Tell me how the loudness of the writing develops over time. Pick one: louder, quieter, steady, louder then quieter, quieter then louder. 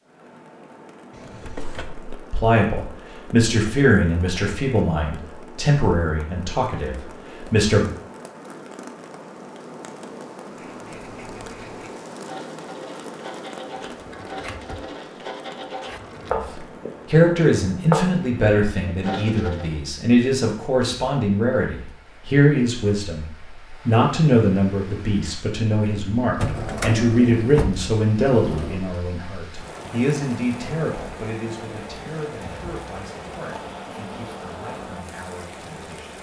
louder.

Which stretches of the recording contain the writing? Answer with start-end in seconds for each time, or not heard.
10.4-19.8.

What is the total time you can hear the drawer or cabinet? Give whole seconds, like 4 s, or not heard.
5 s.